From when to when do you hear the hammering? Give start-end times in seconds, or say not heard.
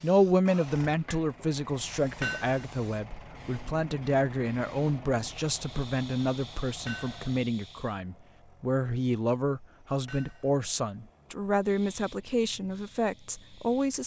2.2-2.6, 6.8-7.2, 10.1-10.5.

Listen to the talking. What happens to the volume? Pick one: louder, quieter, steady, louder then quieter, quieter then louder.
steady.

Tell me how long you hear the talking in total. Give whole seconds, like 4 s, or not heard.
14 s.